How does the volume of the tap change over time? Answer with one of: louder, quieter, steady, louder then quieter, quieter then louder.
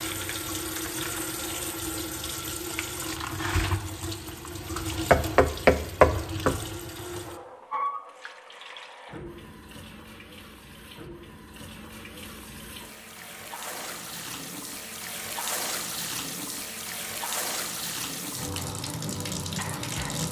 quieter then louder.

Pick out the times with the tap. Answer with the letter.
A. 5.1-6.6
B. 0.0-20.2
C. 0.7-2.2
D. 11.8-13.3
B.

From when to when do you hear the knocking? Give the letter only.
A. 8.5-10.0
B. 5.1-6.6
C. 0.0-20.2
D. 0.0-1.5
B.